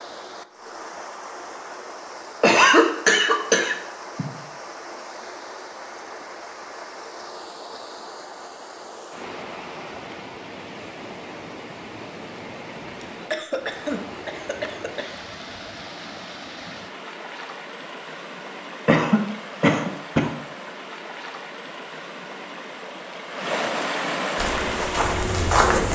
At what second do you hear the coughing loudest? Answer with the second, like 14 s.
3 s.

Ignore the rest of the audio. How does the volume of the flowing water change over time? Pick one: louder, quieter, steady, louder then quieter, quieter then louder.
louder.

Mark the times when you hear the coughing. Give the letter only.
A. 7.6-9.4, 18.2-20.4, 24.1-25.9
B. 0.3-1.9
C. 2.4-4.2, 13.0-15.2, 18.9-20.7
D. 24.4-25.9
C.